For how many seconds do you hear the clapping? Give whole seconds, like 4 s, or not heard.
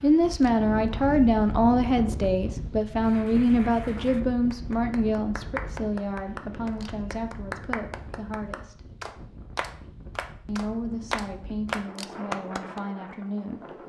10 s.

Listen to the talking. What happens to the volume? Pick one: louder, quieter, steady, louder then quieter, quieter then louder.
quieter.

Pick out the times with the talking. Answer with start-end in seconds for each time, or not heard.
0.0-8.8, 10.4-13.6.